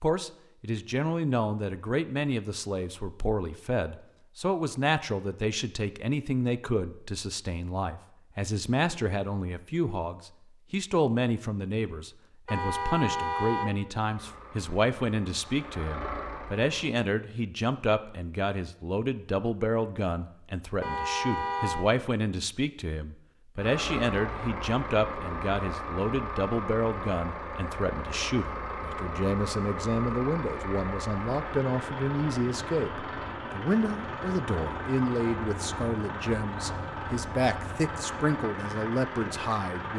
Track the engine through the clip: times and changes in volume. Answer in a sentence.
You can hear the engine briefly from 14.0 to 16.9 s; and from 23.6 to 39.9 s, at a steady volume.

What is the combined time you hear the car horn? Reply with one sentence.
You can hear the car horn for 2 seconds altogether.